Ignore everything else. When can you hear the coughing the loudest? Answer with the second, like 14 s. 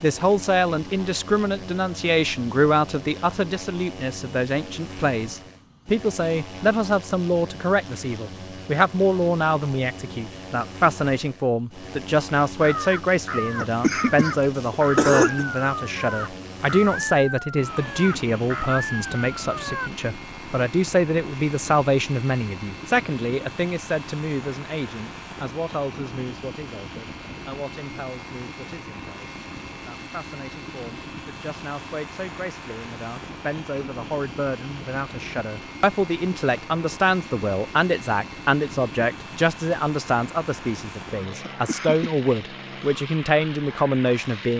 15 s.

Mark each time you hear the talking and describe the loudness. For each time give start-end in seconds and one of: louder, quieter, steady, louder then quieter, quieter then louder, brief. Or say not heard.
0.0-44.5 quieter then louder.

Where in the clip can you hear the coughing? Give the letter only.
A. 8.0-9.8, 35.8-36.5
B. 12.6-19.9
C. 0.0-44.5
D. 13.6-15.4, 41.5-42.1
D.